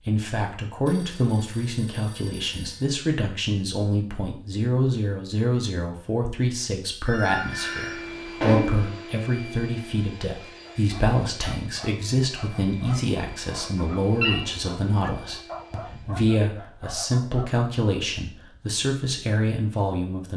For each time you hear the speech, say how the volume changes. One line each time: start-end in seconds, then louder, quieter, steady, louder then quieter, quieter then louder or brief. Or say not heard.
0.1-20.3 steady.